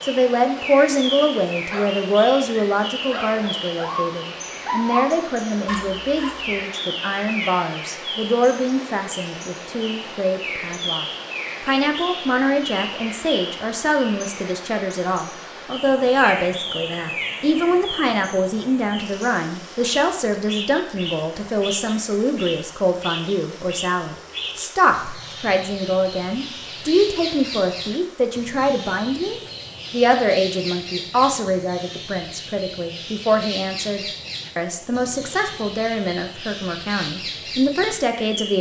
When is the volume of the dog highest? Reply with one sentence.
The loudest moment of the dog is at 5 seconds.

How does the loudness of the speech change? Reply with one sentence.
The loudness of the speech stays about the same.